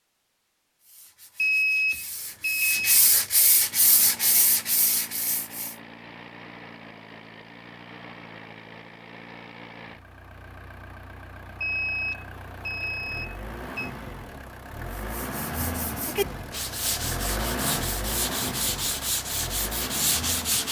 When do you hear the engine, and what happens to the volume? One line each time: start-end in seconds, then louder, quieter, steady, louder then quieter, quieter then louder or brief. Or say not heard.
3.6-20.6 louder.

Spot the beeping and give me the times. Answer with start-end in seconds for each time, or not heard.
1.4-3.0, 11.6-13.9.